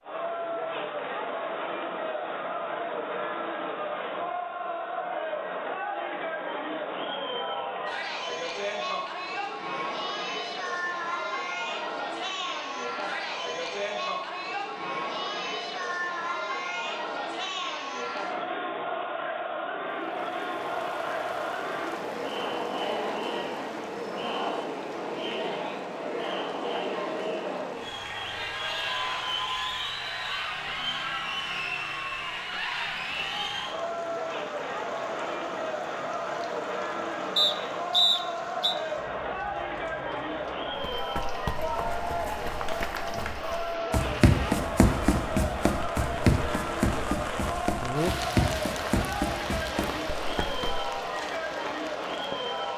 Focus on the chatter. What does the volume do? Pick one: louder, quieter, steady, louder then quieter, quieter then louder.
steady.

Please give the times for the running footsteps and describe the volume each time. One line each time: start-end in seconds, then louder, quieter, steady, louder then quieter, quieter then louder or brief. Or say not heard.
40.8-50.9 louder then quieter.